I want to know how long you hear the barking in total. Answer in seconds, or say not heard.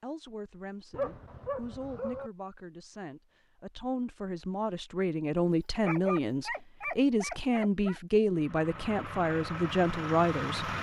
4 s.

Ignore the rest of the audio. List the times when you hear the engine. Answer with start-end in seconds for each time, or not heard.
8.3-10.7.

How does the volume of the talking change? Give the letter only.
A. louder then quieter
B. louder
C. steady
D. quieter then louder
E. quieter
B.